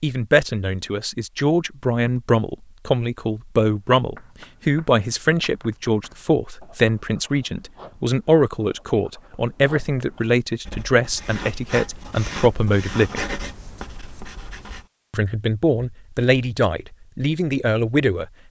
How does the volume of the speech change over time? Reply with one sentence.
The volume of the speech stays about the same.